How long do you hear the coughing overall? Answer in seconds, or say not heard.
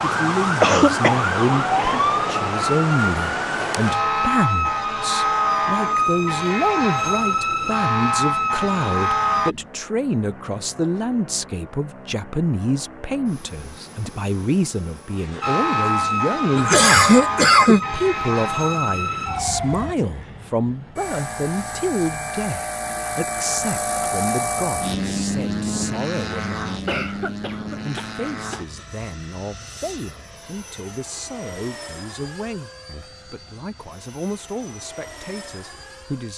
4 s.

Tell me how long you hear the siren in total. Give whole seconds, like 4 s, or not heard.
14 s.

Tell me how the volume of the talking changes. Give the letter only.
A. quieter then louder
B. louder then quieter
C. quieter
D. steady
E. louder
C.